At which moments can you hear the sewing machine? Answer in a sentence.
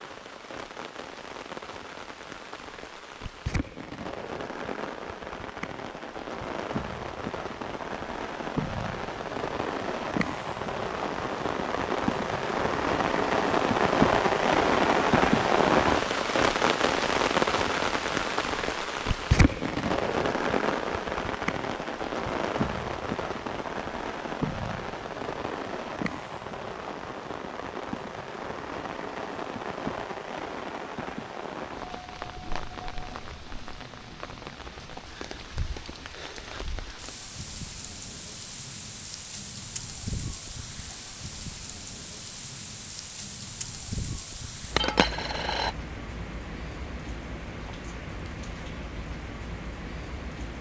The sewing machine can't be heard in this clip.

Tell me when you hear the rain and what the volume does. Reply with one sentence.
You can hear the rain from 0.0 to 50.5 s, getting louder then quieter.